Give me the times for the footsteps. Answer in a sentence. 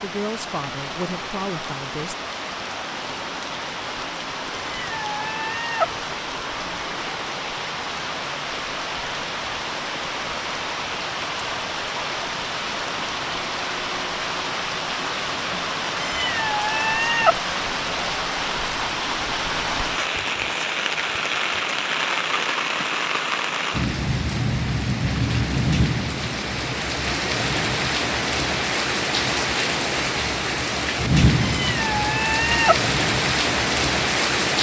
You can't hear the footsteps here.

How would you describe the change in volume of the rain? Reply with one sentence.
The volume of the rain goes up.